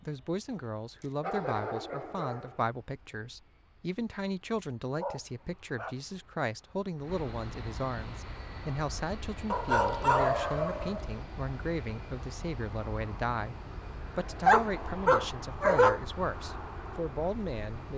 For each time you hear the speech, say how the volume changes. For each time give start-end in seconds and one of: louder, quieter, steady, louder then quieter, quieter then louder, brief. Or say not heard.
0.0-17.9 steady.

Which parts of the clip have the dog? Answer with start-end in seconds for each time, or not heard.
1.0-2.6, 5.0-6.0, 9.5-11.1, 14.4-16.1.